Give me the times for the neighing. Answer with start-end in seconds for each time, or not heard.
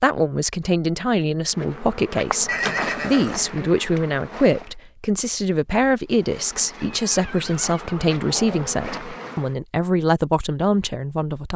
2.5-3.5, 6.8-8.8.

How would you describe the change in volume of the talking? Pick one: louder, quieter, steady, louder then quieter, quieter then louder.
steady.